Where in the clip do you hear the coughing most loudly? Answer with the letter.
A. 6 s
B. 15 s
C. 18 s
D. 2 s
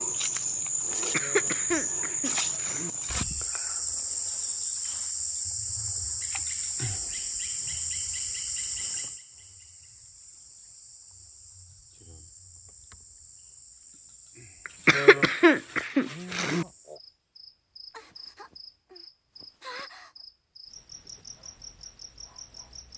B.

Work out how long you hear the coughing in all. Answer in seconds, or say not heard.
4 s.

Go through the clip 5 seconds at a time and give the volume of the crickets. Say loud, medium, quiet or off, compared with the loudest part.
loud, loud, quiet, quiet, quiet.